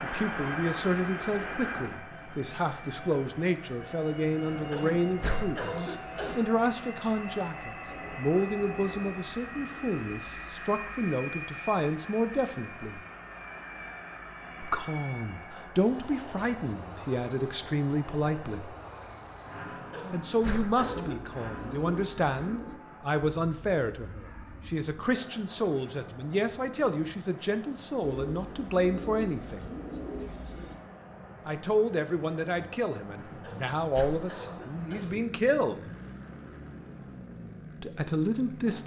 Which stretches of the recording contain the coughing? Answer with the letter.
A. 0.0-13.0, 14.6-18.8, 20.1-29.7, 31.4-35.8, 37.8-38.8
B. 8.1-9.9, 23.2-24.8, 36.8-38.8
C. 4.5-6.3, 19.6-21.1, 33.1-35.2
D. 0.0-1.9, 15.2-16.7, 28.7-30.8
C.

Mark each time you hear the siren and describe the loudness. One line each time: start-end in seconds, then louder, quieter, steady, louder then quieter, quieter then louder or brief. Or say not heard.
not heard.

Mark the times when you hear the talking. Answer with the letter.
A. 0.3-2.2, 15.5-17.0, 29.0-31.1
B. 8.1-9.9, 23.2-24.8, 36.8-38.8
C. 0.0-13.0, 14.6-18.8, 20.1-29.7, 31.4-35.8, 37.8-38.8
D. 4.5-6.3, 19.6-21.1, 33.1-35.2
C.